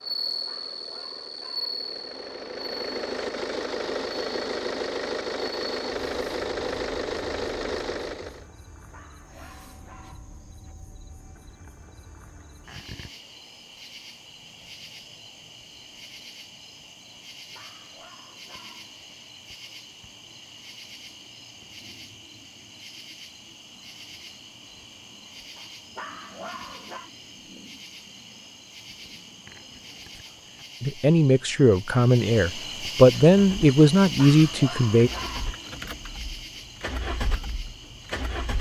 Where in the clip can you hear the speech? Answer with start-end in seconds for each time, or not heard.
30.8-35.1.